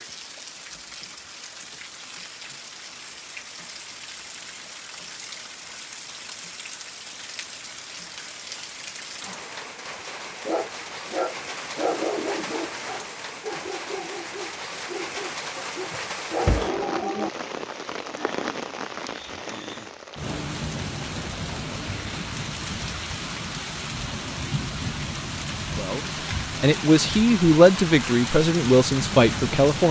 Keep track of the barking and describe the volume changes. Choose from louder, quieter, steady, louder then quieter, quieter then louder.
quieter then louder.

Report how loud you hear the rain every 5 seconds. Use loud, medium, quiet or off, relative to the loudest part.
medium, medium, medium, loud, loud, loud.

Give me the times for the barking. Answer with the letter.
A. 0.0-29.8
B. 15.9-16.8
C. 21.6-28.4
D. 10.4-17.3
D.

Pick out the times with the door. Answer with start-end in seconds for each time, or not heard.
15.9-16.8.